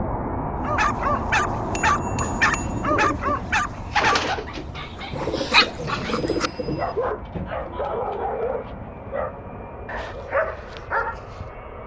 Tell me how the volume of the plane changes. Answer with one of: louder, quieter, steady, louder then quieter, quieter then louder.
quieter.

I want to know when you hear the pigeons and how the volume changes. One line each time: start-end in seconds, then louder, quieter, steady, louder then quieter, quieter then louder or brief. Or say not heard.
2.5-7.9 louder then quieter.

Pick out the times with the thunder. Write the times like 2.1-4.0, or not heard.
5.1-7.2.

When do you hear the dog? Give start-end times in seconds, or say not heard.
0.6-11.4.